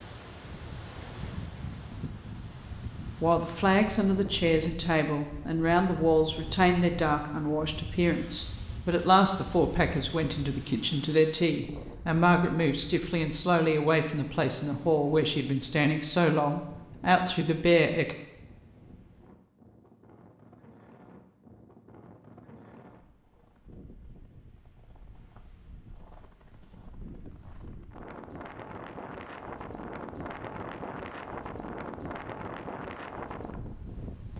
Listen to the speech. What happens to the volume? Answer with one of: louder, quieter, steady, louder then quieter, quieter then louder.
steady.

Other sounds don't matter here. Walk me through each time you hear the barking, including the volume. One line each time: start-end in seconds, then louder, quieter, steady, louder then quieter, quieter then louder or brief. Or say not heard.
not heard.